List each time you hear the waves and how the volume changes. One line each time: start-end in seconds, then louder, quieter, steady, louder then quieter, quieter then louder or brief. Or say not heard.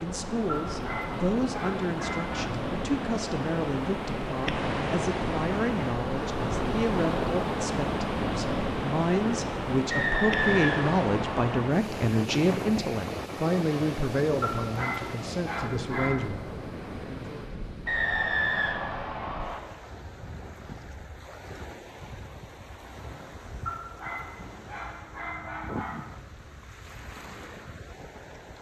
0.0-28.5 quieter.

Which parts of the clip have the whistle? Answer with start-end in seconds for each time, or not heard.
9.9-11.6, 17.9-19.6.